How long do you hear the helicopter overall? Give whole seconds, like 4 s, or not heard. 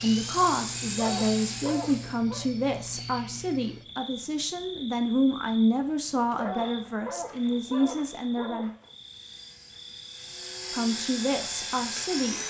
6 s.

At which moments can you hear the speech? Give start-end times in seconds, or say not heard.
0.0-8.7, 10.7-12.4.